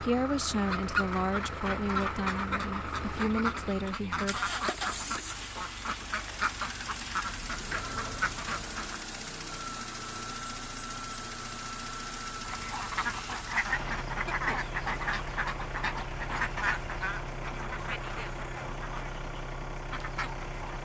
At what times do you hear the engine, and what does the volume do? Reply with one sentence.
You can hear the engine from 0.0 to 20.8 s, at a steady volume.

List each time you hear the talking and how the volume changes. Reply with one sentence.
The talking can be heard from 0.0 to 4.5 s, at a steady volume.